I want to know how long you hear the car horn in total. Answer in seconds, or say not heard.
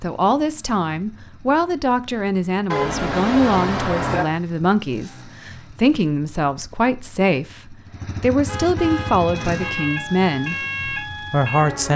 3 s.